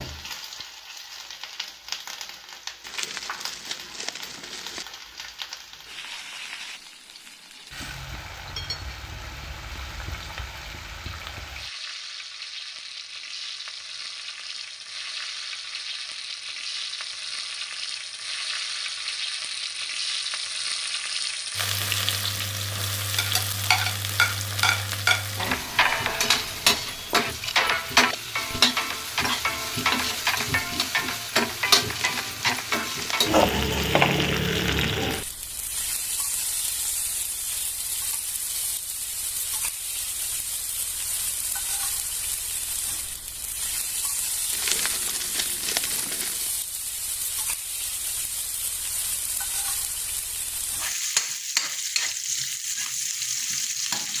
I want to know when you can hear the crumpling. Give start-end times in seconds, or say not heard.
2.8-4.8, 31.9-33.9, 44.5-46.5.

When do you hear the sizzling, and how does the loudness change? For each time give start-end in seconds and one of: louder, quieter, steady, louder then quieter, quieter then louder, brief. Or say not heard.
0.0-54.1 louder then quieter.